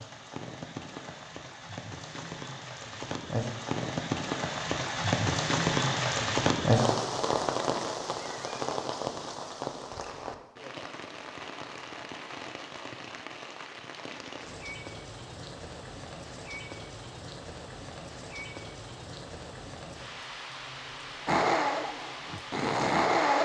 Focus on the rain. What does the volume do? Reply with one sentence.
The volume of the rain goes up, then down.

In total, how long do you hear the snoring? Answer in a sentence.
You can hear the snoring for 2 seconds altogether.